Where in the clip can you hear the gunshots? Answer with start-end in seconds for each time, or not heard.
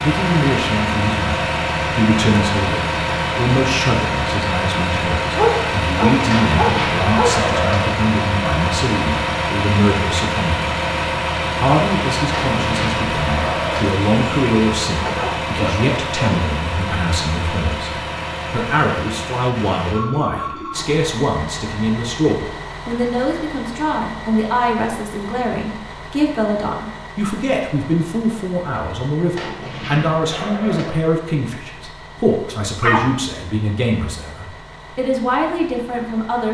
6.2-7.8, 12.3-13.9, 29.4-30.9.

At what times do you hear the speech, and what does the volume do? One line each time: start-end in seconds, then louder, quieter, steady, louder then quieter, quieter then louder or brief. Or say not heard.
0.0-10.7 steady
11.6-36.4 steady.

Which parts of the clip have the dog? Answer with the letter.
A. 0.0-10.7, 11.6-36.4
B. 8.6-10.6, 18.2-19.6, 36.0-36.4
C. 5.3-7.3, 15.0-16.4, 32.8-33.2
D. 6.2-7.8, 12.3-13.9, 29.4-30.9
C.